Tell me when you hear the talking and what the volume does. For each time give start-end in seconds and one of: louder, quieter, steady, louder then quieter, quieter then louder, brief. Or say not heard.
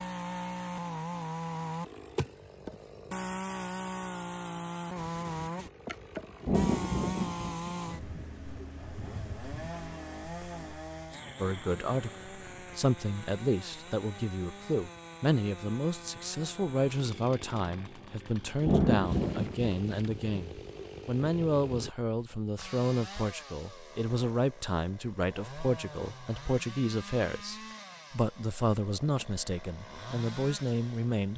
11.3-31.3 steady.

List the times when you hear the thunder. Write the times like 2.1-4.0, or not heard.
6.4-9.7, 18.6-21.9.